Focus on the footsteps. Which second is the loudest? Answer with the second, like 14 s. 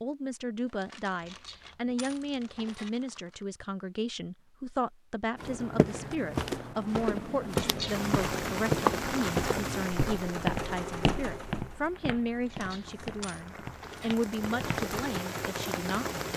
9 s.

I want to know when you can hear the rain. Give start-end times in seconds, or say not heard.
7.8-16.3.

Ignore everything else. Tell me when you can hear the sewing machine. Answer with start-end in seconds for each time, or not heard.
7.7-16.3.